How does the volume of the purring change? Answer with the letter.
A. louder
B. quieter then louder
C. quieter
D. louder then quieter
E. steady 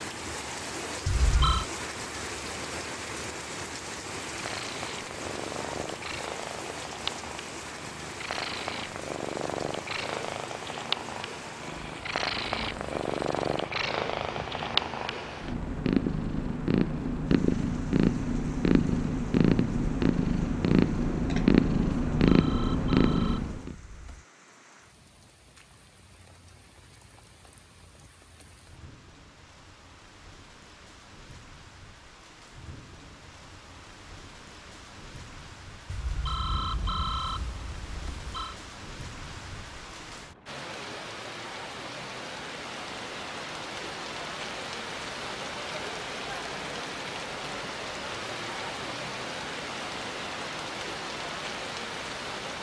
A.